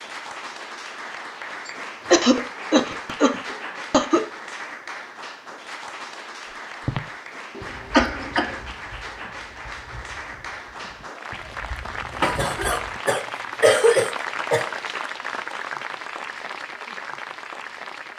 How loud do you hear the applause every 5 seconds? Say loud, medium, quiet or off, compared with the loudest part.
loud, medium, loud, loud.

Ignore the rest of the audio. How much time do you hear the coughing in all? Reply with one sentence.
You can hear the coughing for 6 seconds altogether.